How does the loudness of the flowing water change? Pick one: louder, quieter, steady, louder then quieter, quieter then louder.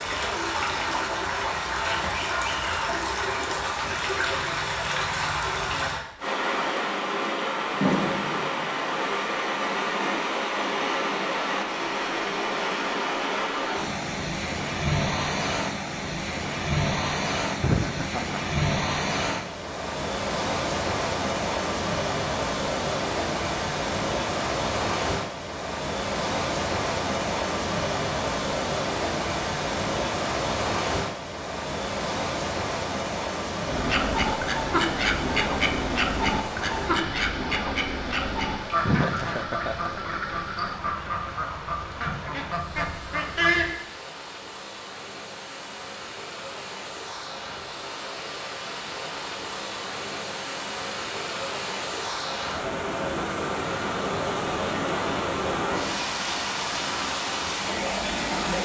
quieter then louder.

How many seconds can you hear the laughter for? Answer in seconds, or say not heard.
2 s.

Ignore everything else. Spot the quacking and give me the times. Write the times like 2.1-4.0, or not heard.
33.6-43.8.